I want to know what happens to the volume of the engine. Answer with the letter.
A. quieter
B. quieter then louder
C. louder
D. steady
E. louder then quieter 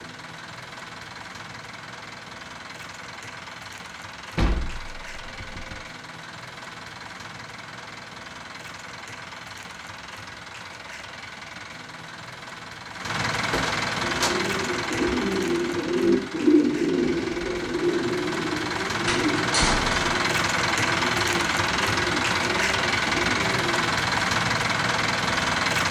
C.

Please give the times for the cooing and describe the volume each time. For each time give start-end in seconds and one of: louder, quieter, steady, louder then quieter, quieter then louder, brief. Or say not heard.
14.0-23.9 quieter.